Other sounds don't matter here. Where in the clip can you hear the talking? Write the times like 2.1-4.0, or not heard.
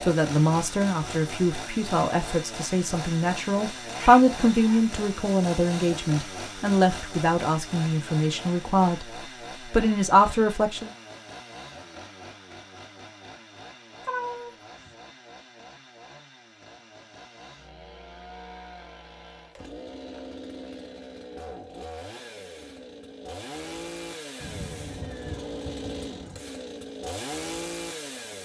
0.0-10.9.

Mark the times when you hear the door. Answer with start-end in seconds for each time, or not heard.
not heard.